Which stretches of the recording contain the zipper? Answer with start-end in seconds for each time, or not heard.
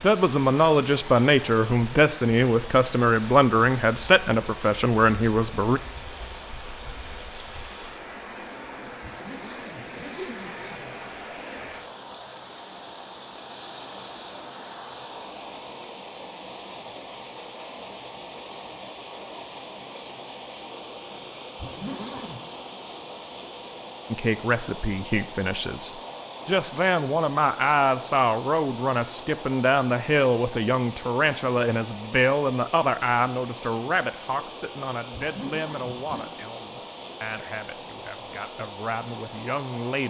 9.0-10.8, 21.6-22.4, 35.1-36.3.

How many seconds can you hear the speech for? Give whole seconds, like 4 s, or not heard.
22 s.